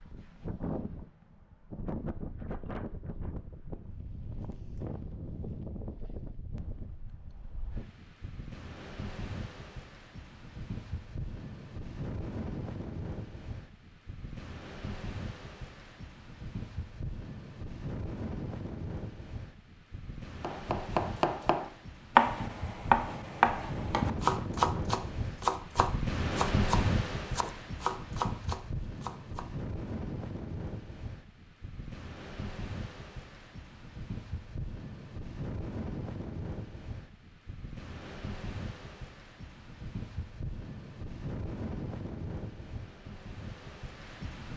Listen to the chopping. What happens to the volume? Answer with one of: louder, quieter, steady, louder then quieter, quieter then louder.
quieter.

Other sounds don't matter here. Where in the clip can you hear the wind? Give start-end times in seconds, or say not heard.
0.0-44.5.